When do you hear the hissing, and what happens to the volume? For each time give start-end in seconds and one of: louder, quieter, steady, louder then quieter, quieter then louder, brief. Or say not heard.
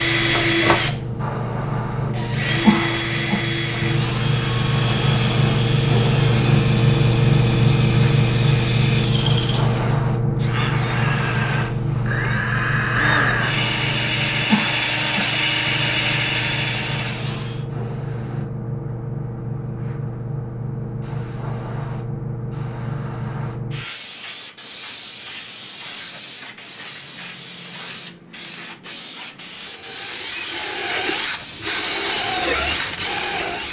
0.0-33.6 quieter.